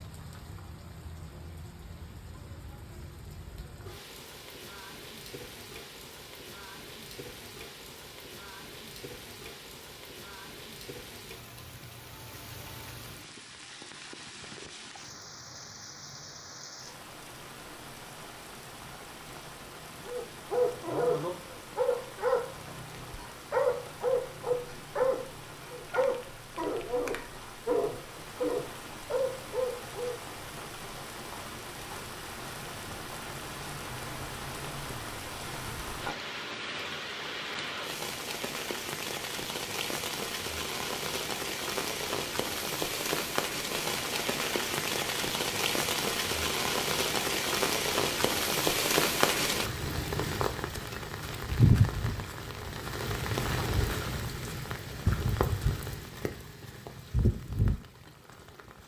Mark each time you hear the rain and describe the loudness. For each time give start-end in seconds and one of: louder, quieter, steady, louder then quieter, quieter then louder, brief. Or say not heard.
0.0-58.8 louder.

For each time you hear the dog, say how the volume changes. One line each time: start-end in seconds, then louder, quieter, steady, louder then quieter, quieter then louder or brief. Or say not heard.
20.1-30.1 steady.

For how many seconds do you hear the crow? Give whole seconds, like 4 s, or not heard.
not heard.